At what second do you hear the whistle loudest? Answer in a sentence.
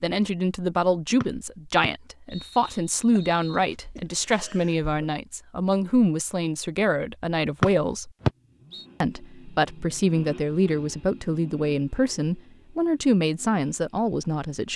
The loudest moment of the whistle is at 8 seconds.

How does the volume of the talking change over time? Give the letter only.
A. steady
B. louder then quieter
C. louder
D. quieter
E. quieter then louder
A.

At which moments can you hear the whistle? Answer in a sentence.
You can hear the whistle from 1.2 to 3.6 s and from 7.6 to 8.8 s.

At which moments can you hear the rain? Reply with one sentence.
The rain can't be heard in this clip.